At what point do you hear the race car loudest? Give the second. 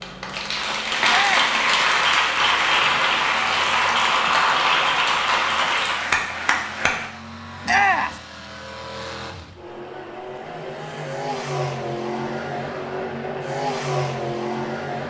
14 s.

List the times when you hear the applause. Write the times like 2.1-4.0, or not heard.
0.0-7.1.